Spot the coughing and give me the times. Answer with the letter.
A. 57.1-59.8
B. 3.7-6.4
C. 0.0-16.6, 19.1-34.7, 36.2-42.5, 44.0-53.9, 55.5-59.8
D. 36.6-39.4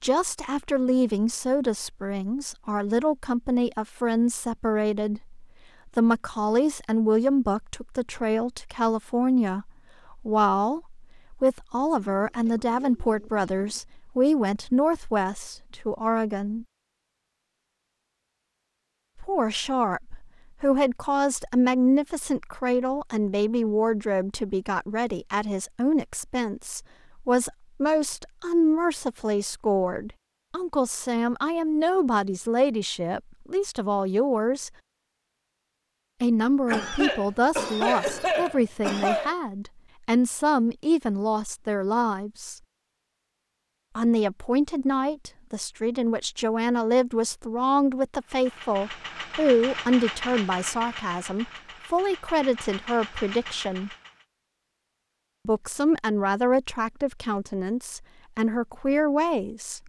D.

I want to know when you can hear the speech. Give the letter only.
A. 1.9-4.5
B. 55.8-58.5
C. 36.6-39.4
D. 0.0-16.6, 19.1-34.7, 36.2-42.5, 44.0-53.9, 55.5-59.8
D.